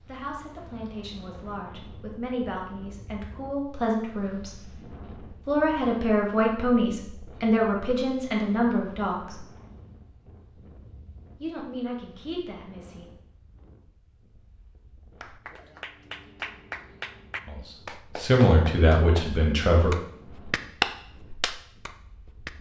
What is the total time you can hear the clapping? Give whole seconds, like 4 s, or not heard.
7 s.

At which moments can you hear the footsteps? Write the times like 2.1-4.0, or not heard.
not heard.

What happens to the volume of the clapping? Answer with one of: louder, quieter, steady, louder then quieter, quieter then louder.
louder.